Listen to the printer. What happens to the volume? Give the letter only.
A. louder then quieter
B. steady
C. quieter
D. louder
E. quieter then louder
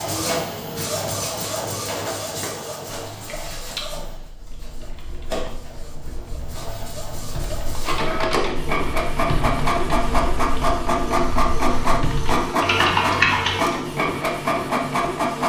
E.